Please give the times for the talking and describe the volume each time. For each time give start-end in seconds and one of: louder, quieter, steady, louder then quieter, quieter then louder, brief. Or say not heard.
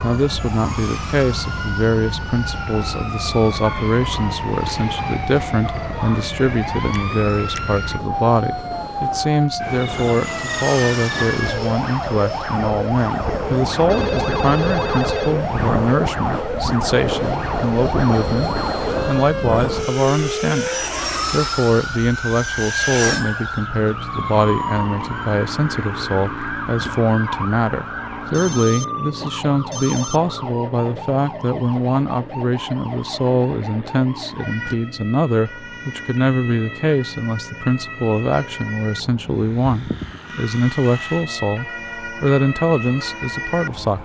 0.0-20.7 steady
21.3-44.0 steady.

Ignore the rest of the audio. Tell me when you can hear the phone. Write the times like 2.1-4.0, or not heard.
13.8-15.3, 28.2-30.2.